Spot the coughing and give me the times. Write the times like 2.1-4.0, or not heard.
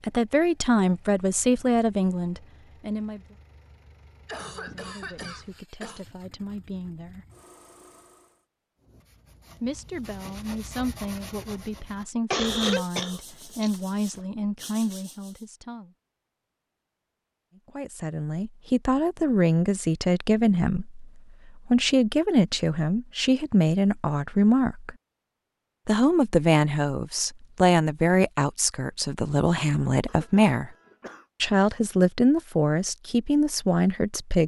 4.2-6.0, 12.3-14.2, 30.1-31.2.